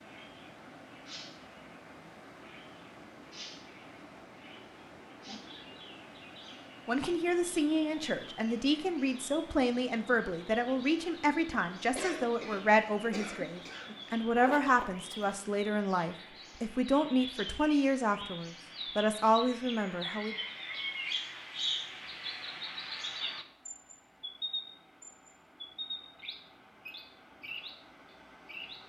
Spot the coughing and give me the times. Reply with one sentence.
You can hear the coughing from 11.9 to 13.9 s.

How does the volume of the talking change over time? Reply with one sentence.
The loudness of the talking stays about the same.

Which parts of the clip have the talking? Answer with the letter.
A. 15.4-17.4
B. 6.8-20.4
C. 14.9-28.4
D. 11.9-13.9
B.